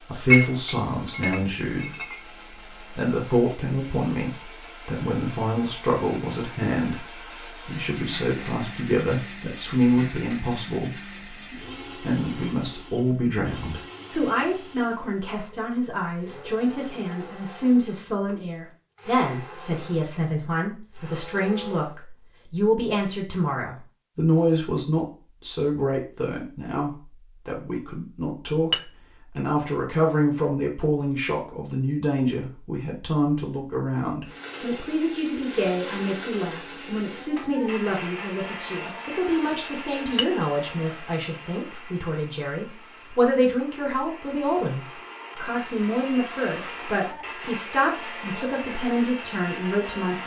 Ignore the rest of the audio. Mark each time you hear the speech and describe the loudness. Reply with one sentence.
You can hear the speech briefly from 0.1 to 1.9 s; and from 2.8 to 50.2 s, at a steady volume.